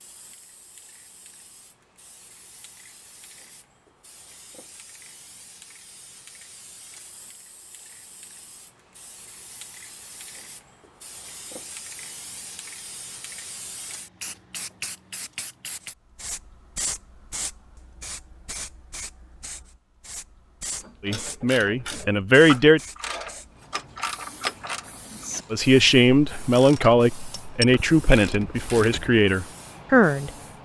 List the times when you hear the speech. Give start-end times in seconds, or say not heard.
21.0-22.8, 25.5-30.3.